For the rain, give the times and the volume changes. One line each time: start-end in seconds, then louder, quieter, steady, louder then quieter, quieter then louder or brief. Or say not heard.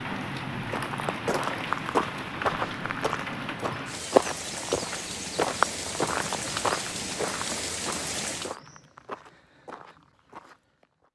0.0-8.6 steady.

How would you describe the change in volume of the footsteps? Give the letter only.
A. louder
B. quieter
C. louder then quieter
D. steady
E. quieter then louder
B.